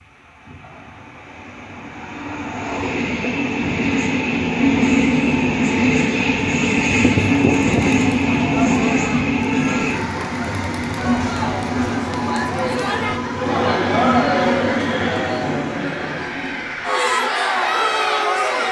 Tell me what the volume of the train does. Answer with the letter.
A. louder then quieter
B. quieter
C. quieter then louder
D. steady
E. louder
A.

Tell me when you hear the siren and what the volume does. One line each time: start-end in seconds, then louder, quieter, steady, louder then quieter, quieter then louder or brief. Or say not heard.
not heard.